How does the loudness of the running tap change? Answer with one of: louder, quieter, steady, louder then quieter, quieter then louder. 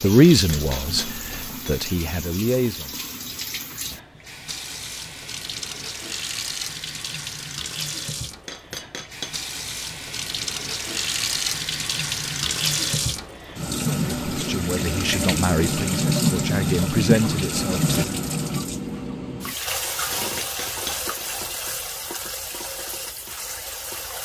louder then quieter.